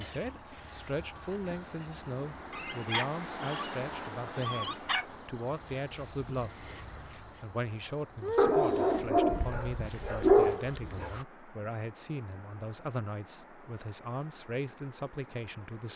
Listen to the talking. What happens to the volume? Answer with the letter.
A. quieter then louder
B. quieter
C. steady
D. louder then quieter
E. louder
C.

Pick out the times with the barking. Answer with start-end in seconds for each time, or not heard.
2.5-5.0, 8.3-11.1.